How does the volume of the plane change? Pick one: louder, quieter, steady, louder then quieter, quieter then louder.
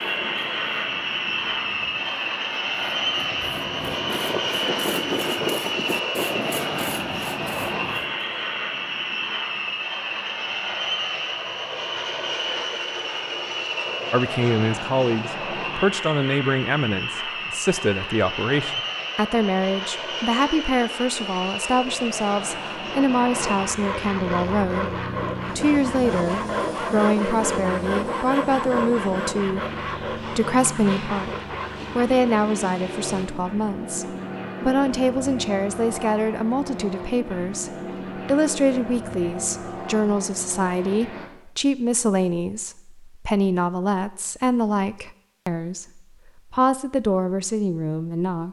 quieter.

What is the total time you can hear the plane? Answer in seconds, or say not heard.
41 s.